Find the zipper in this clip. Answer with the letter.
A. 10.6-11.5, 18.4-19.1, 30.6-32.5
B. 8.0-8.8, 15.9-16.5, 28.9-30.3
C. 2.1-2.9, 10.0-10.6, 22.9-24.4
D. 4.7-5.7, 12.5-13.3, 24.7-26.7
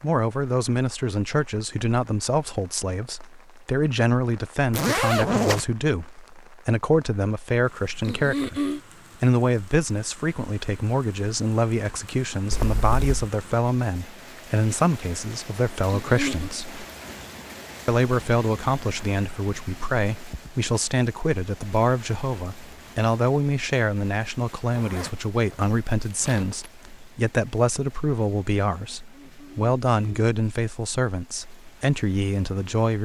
D.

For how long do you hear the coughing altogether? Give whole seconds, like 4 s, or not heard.
3 s.